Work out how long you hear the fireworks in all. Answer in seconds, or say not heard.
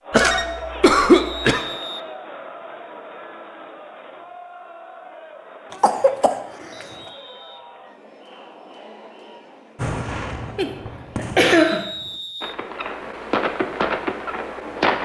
5 s.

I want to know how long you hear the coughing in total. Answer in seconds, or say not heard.
4 s.